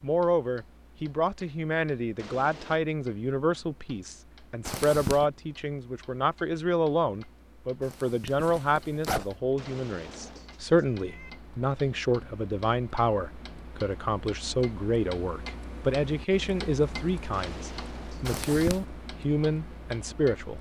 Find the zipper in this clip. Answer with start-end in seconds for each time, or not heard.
4.7-5.2, 7.8-9.3, 18.2-18.9.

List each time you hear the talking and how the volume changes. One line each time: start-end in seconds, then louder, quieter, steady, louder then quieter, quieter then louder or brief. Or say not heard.
0.0-20.5 steady.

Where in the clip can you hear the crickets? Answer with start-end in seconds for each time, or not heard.
not heard.